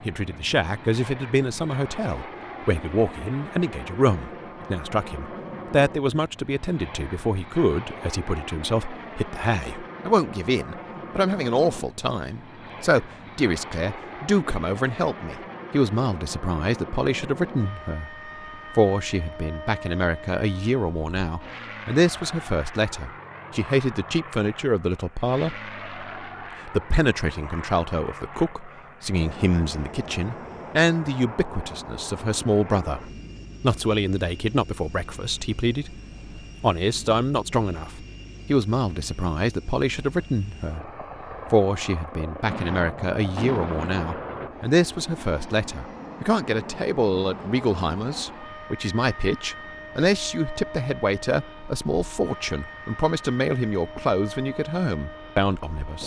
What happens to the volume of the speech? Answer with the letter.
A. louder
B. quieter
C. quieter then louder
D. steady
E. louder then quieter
D.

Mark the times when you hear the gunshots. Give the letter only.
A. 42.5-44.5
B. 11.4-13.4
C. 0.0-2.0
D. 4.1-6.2
A.